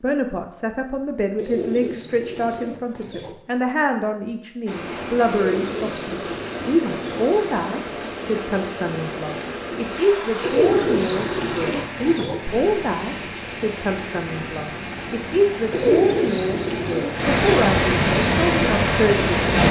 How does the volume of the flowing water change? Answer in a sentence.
The volume of the flowing water goes up.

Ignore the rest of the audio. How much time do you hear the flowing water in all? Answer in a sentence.
You can hear the flowing water for 15 seconds altogether.